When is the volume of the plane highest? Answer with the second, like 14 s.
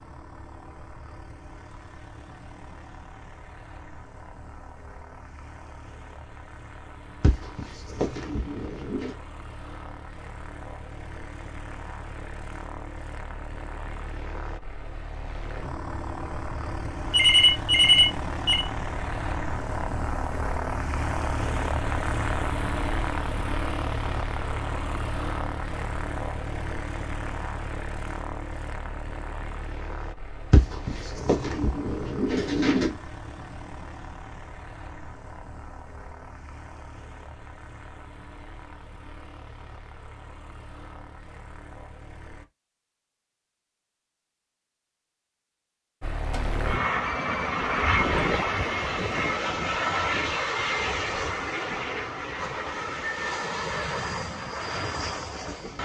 48 s.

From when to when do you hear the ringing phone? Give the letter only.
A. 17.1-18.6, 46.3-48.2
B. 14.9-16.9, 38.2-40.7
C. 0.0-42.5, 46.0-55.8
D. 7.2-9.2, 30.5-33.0
A.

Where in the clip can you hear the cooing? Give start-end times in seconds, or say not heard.
7.2-9.2, 30.5-33.0.